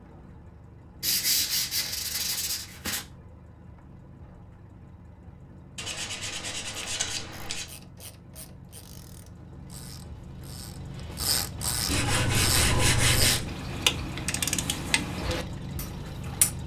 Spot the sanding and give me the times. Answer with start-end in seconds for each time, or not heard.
1.0-3.0, 5.8-7.7, 11.8-13.4.